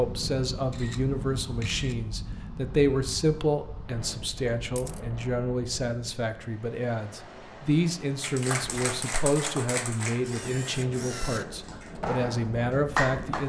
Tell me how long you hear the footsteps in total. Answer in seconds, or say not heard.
not heard.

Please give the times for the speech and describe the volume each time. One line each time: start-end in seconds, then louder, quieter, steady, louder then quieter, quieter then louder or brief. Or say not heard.
0.0-13.4 steady.